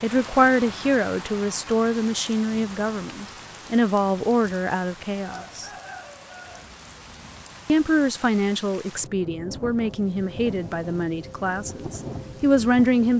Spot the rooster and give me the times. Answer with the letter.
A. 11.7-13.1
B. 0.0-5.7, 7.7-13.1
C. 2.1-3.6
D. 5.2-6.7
D.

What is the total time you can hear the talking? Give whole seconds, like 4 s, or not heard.
11 s.